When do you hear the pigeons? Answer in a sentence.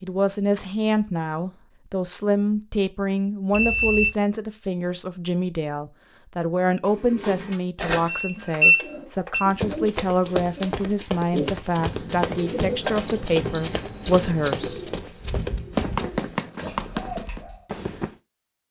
You can hear the pigeons from 6.8 to 17.6 s.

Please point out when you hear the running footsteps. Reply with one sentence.
The running footsteps can be heard from 9.5 to 18.1 s.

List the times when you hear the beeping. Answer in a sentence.
You can hear the beeping from 3.5 to 4.2 s, from 8.1 to 9.4 s and from 12.8 to 14.7 s.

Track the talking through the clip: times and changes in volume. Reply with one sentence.
You can hear the talking from 0.0 to 14.8 s, at a steady volume.